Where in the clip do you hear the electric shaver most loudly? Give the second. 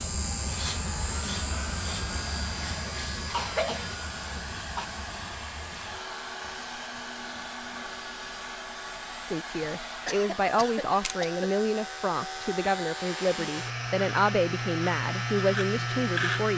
16 s.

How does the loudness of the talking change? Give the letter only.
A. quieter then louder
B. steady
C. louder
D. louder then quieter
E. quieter
B.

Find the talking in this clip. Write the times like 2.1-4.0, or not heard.
9.2-16.5.